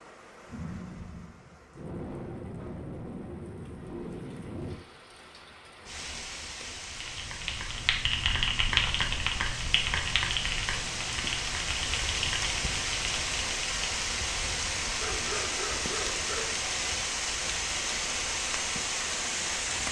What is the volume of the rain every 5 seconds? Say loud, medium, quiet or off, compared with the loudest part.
medium, medium, loud, loud.